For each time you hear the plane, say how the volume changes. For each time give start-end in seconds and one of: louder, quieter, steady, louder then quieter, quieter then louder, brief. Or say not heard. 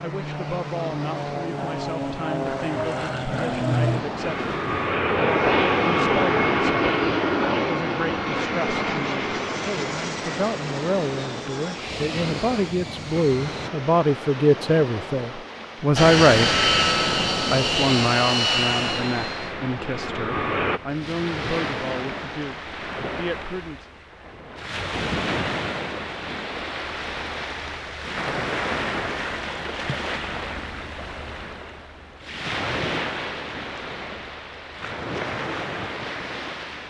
0.0-13.7 louder then quieter
15.9-20.8 quieter.